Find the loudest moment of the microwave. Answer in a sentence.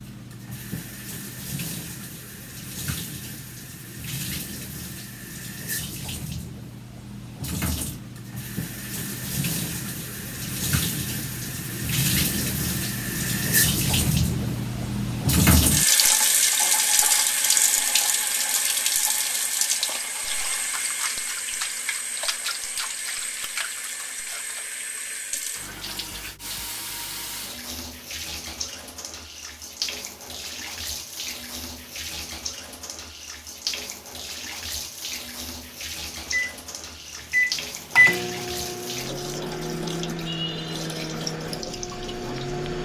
The loudest moment of the microwave is at 38 seconds.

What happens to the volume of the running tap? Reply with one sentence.
The loudness of the running tap goes up, then down.